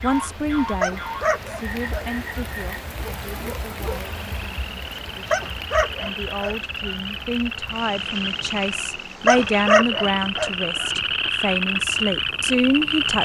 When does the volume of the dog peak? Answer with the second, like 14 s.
10 s.